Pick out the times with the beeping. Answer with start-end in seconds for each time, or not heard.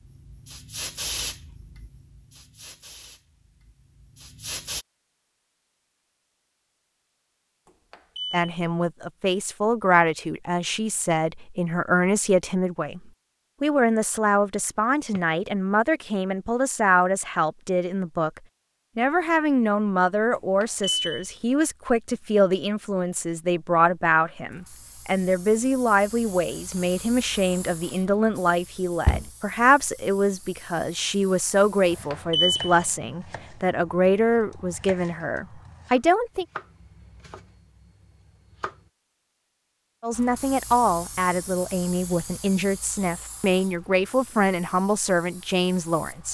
7.7-8.4, 20.4-21.4, 32.1-32.9.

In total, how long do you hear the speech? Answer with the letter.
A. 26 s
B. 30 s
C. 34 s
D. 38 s
C.